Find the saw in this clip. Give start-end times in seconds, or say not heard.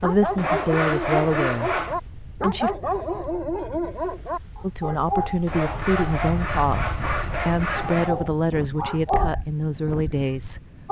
0.3-1.9, 5.5-8.2.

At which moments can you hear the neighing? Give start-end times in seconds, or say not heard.
not heard.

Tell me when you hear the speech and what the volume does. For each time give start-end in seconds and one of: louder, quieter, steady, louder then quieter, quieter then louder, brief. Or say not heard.
0.0-2.7 brief
4.6-10.6 steady.